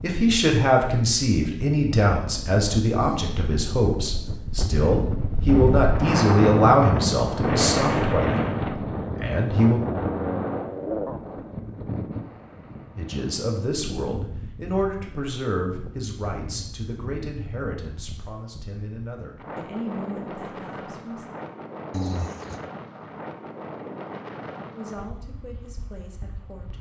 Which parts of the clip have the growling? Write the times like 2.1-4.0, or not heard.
2.9-3.9, 9.8-11.2, 21.9-22.7.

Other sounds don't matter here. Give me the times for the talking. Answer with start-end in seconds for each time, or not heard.
0.0-8.5, 9.2-9.8, 12.9-21.2, 24.7-26.7.